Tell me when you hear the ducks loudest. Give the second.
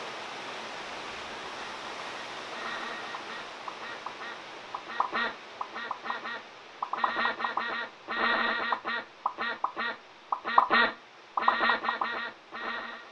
11 s.